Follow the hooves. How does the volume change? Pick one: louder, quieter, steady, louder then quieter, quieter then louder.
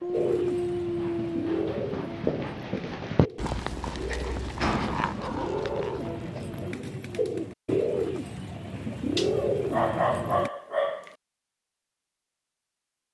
louder then quieter.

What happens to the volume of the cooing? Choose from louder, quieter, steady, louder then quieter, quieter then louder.
quieter then louder.